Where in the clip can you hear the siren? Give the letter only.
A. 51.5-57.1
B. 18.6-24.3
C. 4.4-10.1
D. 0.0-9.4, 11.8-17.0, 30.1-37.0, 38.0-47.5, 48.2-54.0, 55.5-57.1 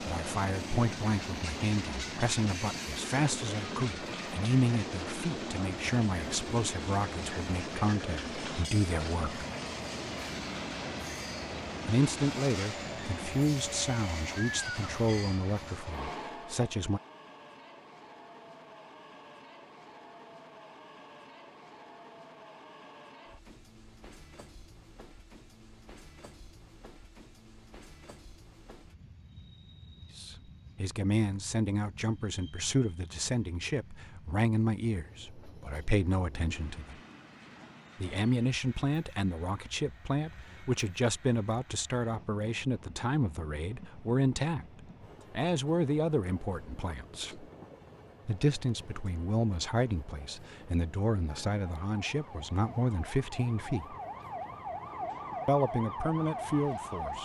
A.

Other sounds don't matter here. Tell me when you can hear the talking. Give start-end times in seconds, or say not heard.
0.0-9.4, 11.8-17.0, 30.1-37.0, 38.0-47.5, 48.2-54.0, 55.5-57.1.